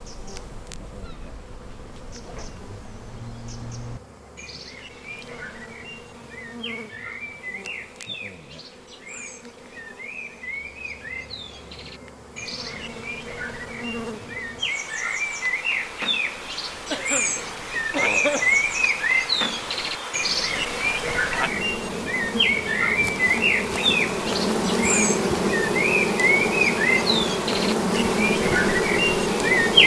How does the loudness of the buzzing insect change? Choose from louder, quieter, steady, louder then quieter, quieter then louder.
louder.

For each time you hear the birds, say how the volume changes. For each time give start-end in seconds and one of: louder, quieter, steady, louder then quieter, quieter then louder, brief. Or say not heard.
0.0-29.8 louder.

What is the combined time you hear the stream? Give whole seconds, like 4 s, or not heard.
not heard.